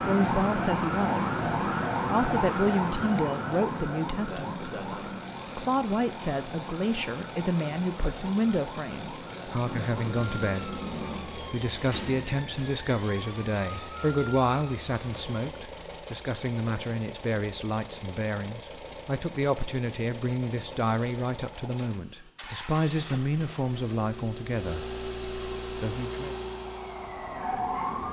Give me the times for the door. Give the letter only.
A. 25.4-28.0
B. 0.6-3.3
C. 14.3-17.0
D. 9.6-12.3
D.